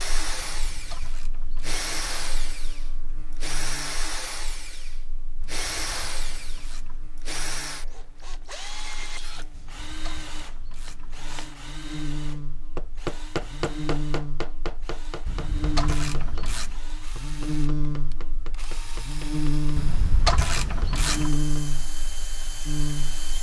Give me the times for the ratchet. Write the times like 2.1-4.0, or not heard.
0.4-2.4, 5.4-7.1, 9.5-11.6, 15.2-16.8, 19.8-21.4.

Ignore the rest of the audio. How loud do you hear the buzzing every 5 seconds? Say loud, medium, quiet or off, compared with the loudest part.
quiet, quiet, medium, loud, loud.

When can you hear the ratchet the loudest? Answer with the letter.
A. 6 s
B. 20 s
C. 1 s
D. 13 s
B.